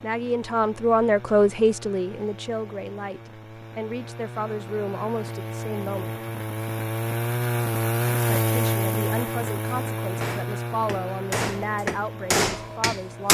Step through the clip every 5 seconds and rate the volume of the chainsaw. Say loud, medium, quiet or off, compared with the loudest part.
quiet, loud, medium.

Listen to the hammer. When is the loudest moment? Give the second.
12 s.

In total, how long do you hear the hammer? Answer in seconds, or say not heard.
3 s.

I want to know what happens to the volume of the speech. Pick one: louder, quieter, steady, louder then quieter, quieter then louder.
quieter.